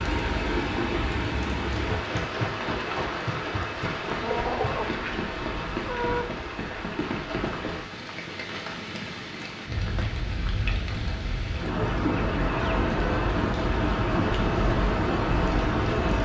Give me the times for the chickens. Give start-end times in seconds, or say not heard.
4.2-6.2, 11.8-13.3.